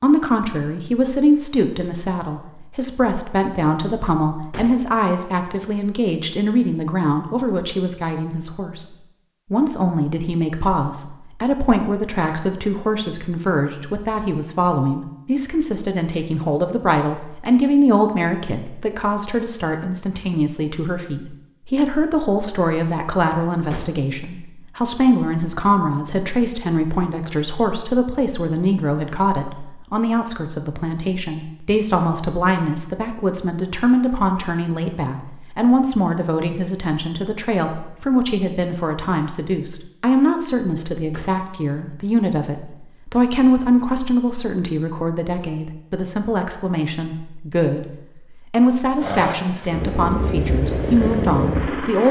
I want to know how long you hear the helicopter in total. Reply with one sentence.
The helicopter can be heard for 3 seconds in total.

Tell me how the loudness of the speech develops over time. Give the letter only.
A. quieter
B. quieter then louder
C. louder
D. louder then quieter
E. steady
E.